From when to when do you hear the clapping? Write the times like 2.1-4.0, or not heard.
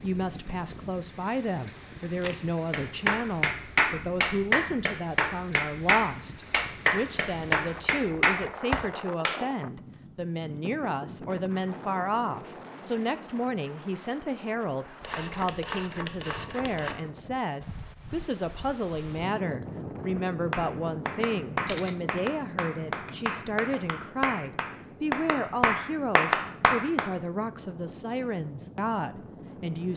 2.7-9.4, 20.5-27.1.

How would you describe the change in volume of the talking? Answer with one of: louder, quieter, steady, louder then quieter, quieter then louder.
steady.